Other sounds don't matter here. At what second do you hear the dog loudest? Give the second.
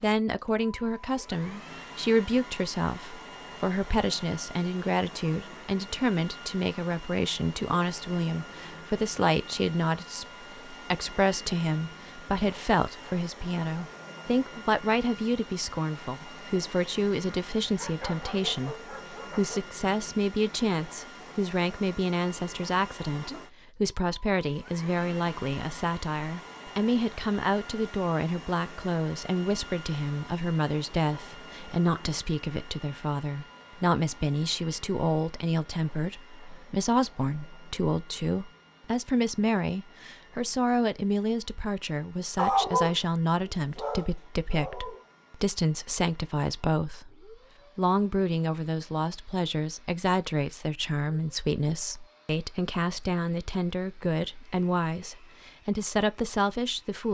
43 s.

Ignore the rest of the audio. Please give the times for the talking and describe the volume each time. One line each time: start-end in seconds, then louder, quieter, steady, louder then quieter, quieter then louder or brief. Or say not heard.
0.0-57.0 steady.